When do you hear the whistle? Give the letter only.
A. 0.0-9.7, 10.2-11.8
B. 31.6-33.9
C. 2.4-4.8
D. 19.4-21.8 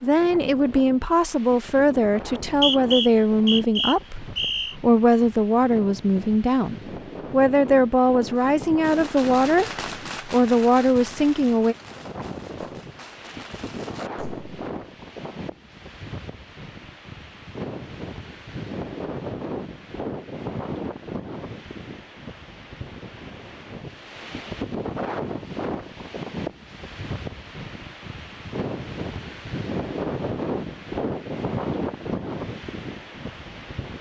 C.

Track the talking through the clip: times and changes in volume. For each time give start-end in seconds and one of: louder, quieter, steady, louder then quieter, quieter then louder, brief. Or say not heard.
0.0-9.7 steady
10.2-11.8 brief.